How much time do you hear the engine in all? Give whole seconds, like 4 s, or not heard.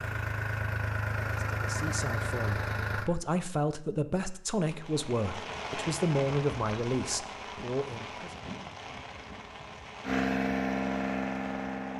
5 s.